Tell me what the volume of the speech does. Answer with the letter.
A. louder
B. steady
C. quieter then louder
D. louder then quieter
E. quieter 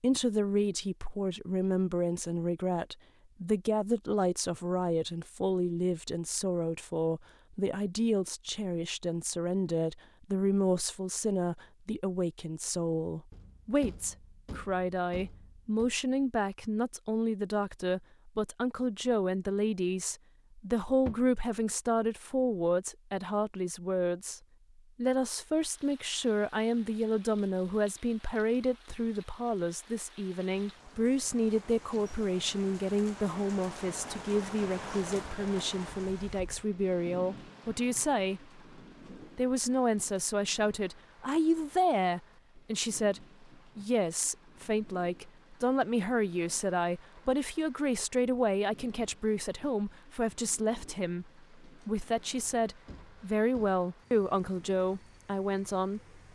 B.